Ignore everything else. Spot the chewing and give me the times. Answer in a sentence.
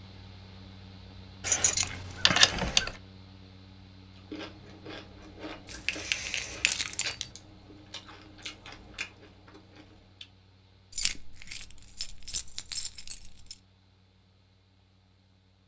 You can hear the chewing from 4.2 to 10.2 s.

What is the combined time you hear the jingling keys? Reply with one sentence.
You can hear the jingling keys for 6 seconds altogether.